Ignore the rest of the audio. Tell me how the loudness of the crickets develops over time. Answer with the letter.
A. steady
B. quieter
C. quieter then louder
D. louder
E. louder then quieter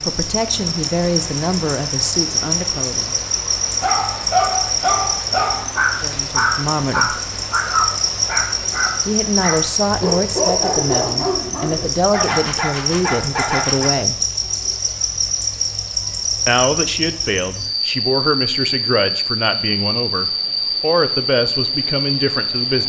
A.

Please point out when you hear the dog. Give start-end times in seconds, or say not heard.
3.6-13.9.